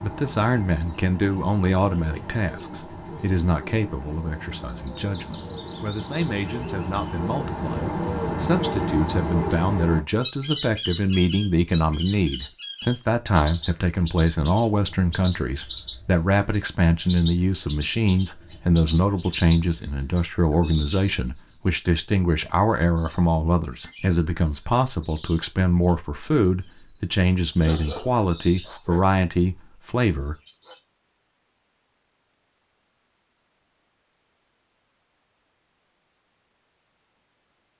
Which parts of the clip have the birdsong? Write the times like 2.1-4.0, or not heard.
0.0-30.8.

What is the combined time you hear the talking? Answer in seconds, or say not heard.
30 s.